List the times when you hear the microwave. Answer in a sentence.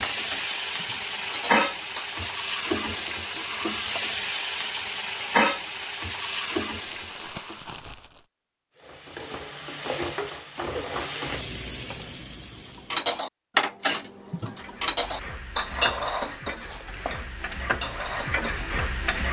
You can't hear the microwave here.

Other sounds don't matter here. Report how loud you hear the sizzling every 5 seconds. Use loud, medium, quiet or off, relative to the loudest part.
loud, loud, medium, medium.